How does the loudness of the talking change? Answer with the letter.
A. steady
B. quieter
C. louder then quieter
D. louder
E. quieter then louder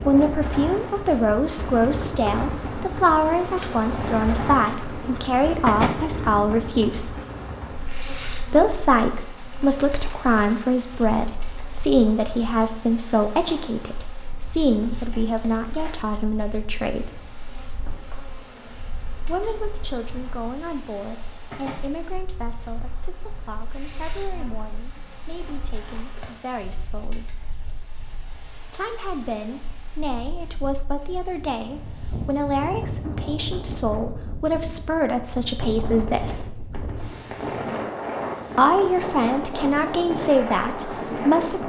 E.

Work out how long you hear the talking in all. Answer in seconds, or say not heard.
35 s.